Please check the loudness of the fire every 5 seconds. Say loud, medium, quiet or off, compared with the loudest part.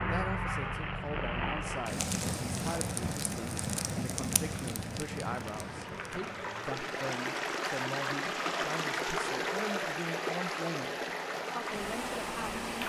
loud, medium, off.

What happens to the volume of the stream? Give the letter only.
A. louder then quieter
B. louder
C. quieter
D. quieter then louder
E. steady
B.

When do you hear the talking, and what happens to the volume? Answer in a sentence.
The talking can be heard from 0.1 to 10.9 s, at a steady volume; and briefly from 11.5 to 12.6 s.